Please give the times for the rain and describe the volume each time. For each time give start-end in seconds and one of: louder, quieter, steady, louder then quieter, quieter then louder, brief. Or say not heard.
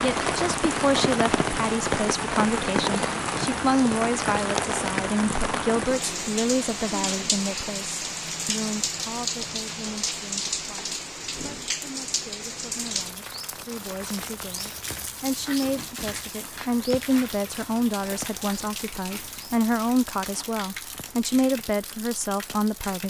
0.0-23.0 quieter.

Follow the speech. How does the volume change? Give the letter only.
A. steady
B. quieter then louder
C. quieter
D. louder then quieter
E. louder
B.